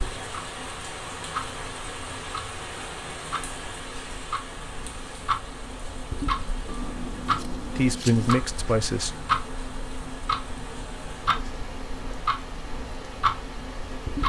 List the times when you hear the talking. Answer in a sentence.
You can hear the talking from 7.8 to 9.2 s.